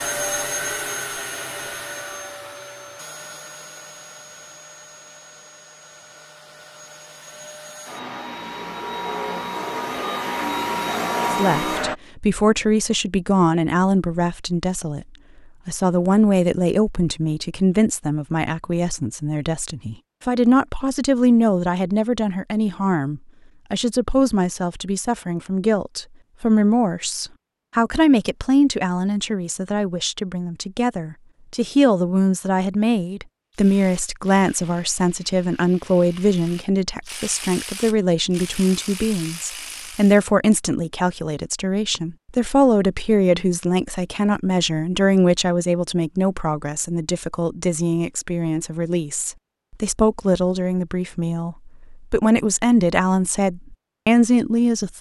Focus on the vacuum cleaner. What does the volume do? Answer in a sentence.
The volume of the vacuum cleaner goes down, then up.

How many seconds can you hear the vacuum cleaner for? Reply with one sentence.
You can hear the vacuum cleaner for 12 seconds altogether.